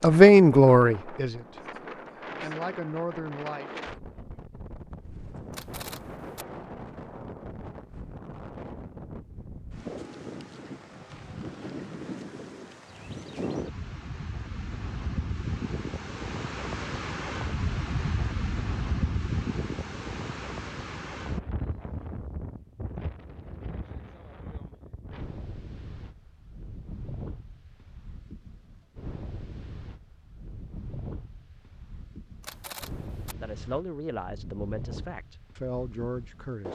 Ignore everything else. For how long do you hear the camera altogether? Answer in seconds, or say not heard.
2 s.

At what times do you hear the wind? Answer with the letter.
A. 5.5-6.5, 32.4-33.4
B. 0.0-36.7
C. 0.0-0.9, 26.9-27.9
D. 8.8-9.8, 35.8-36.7
B.